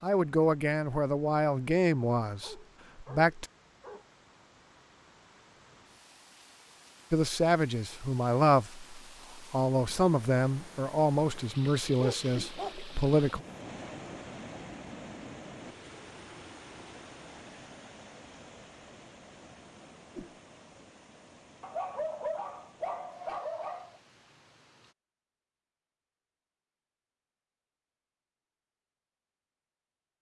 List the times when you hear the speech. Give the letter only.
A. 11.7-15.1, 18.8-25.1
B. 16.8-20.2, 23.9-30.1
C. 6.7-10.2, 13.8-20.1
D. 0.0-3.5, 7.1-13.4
D.